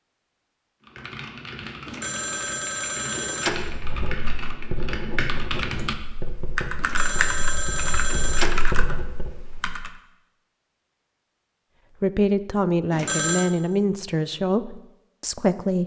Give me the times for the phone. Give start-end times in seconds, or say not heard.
1.9-3.7, 6.8-8.7, 12.9-13.5.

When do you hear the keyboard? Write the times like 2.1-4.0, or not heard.
0.8-9.9.